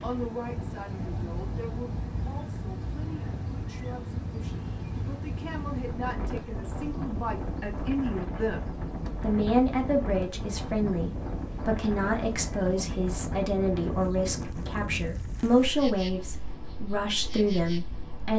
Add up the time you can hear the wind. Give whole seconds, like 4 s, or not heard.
18 s.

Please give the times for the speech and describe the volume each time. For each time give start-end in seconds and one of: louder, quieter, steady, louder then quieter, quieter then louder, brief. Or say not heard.
0.0-18.3 louder.